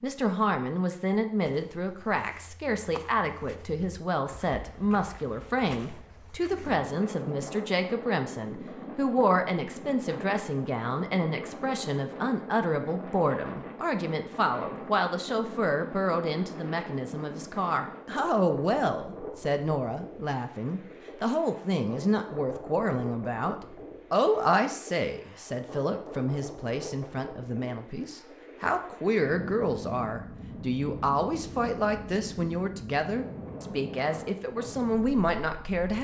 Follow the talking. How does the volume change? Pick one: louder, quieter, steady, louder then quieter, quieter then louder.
steady.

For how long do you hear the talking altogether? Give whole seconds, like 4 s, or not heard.
36 s.